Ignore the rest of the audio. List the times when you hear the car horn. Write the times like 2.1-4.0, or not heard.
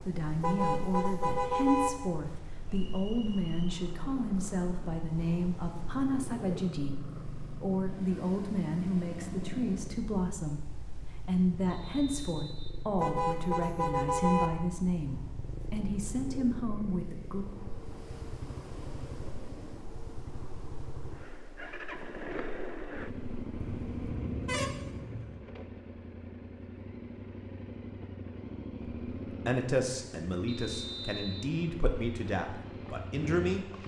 0.4-1.9, 13.0-14.5, 23.6-25.4.